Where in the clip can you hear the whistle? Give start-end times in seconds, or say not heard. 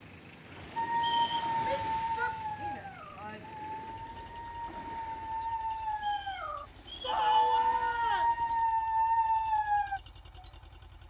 0.9-1.6, 6.0-7.2.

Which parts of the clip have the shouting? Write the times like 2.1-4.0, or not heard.
1.6-3.5, 7.0-8.3.